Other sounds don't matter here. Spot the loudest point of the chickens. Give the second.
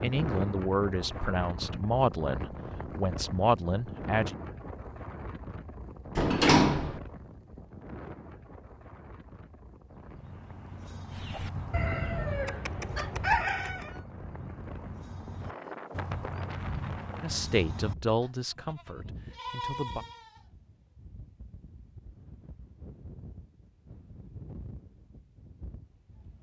13 s.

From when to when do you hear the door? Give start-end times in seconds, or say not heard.
6.2-7.0.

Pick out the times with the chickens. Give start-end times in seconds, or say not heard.
11.1-14.0.